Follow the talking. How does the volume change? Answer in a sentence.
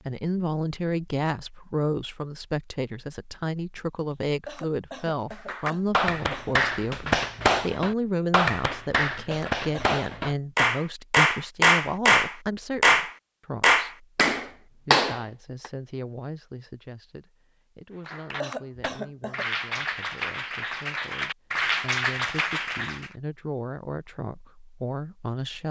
The volume of the talking goes down, then up.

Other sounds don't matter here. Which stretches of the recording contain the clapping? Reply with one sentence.
The clapping can be heard from 5.3 to 15.7 s and from 18.1 to 23.1 s.